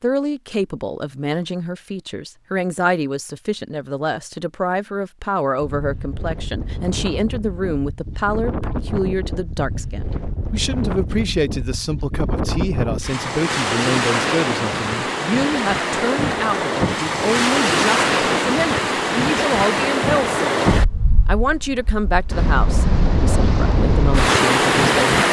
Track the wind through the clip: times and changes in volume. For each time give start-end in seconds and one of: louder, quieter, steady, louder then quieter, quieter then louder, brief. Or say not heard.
5.5-25.2 louder.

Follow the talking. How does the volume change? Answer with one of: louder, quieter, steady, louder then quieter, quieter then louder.
steady.